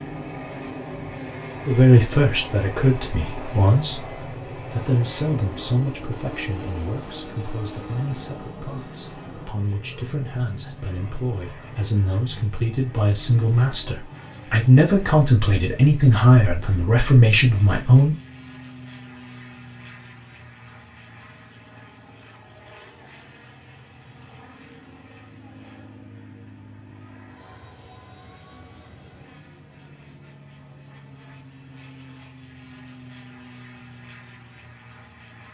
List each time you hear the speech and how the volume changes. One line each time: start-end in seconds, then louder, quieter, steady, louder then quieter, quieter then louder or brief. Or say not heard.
1.6-18.1 quieter then louder.